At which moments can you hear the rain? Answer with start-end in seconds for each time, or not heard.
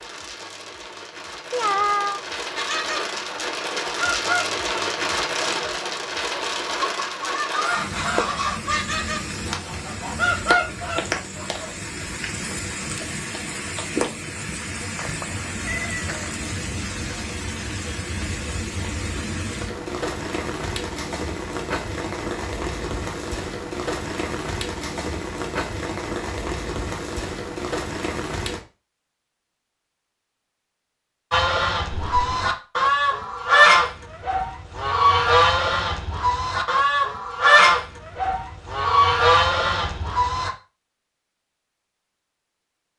0.0-28.6.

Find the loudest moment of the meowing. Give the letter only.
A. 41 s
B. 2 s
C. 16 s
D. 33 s
B.